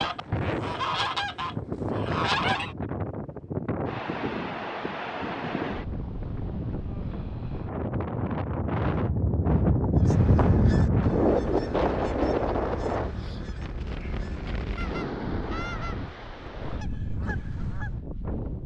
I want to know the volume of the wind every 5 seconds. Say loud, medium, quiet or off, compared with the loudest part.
medium, loud, loud, medium.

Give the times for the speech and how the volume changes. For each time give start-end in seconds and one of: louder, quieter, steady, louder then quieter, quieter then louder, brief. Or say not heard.
not heard.